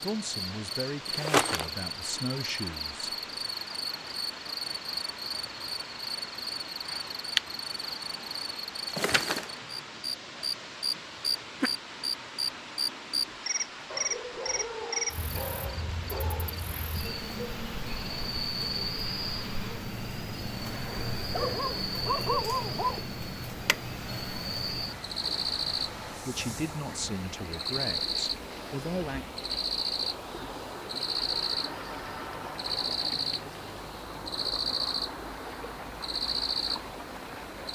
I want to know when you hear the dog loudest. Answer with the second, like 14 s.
22 s.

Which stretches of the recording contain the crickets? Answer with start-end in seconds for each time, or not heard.
0.0-37.6.